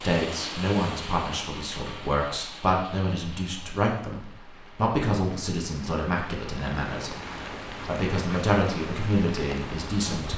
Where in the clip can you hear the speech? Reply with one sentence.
You can hear the speech from 0.0 to 7.1 s and from 7.8 to 10.3 s.